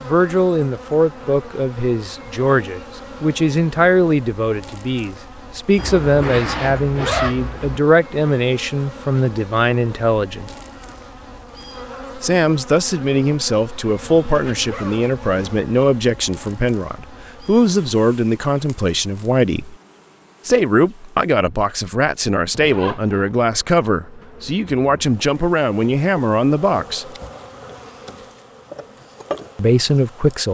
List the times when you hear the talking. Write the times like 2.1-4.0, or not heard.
0.0-10.5, 12.2-19.8, 20.4-27.1, 29.6-30.4.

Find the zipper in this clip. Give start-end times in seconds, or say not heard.
5.8-7.8, 14.2-15.7, 22.6-23.3.